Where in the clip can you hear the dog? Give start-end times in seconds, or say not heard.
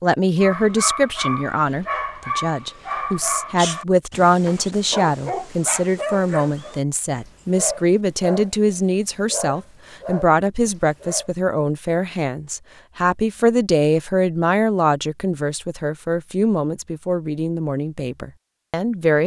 0.4-11.3.